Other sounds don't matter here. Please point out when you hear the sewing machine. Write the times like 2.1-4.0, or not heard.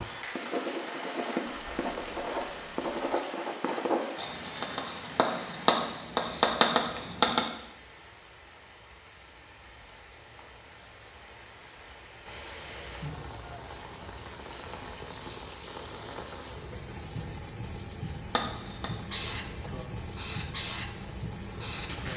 not heard.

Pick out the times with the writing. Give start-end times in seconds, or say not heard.
0.3-7.5, 18.2-22.1.